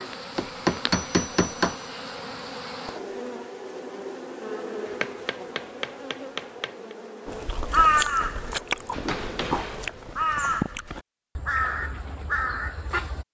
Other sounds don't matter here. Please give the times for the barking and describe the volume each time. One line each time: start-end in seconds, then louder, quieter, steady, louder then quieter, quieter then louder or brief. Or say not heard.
not heard.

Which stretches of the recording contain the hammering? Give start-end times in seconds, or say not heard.
0.3-1.9, 4.8-7.0, 8.9-10.6.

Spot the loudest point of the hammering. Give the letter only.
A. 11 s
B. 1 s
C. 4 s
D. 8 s
B.